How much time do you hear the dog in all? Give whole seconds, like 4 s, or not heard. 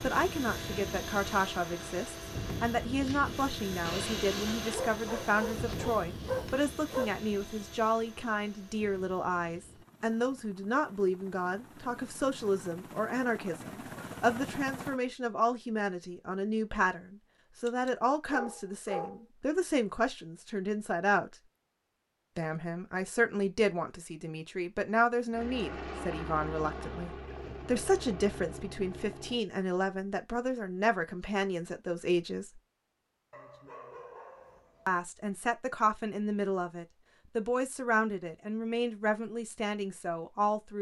6 s.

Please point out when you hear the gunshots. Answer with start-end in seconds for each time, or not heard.
3.0-4.8.